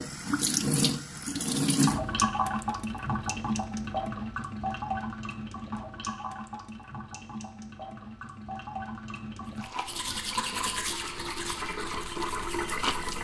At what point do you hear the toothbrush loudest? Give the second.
11 s.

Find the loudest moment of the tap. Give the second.
2 s.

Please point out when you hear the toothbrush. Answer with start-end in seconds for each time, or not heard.
9.7-13.1.